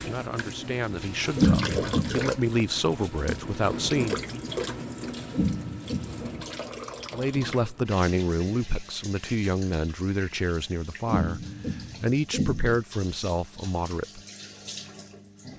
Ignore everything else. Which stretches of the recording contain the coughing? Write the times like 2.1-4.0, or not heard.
1.4-2.3, 5.3-6.5, 11.1-12.8.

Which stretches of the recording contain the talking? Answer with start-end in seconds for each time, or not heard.
0.0-4.2, 7.1-14.2.